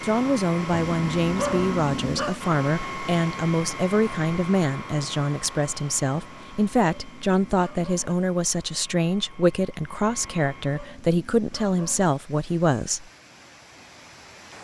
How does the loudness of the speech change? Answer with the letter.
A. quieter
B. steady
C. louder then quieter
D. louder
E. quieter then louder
B.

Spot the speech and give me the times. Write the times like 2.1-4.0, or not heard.
0.0-13.1.